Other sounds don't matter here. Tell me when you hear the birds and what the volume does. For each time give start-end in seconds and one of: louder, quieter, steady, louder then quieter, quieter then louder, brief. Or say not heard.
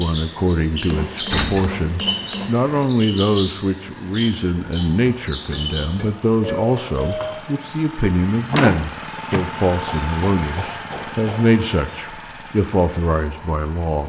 0.0-7.4 steady.